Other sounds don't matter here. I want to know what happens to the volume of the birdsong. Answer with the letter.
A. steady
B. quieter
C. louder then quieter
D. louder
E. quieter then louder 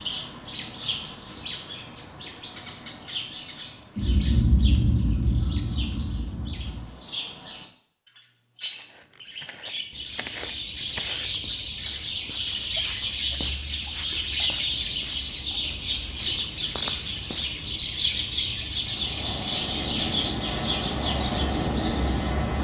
D.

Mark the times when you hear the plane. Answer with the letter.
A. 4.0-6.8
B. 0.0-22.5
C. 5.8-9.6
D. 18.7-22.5
D.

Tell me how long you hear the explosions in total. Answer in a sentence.
You can hear the explosions for 3 seconds altogether.